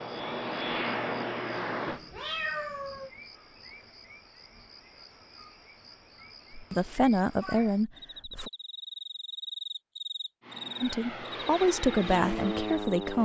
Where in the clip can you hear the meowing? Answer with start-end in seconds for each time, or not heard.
1.9-3.1, 6.7-7.8.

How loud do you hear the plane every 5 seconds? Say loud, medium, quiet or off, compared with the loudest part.
loud, off, loud.